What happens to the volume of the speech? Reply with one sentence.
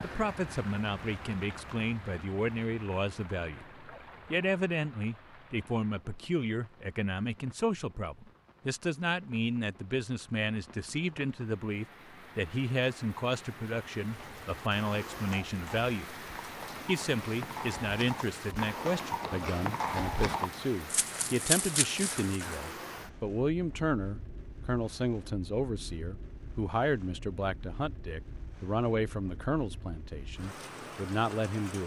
The volume of the speech stays about the same.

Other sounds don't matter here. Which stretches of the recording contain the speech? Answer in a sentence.
You can hear the speech from 0.0 to 16.1 s and from 16.9 to 31.8 s.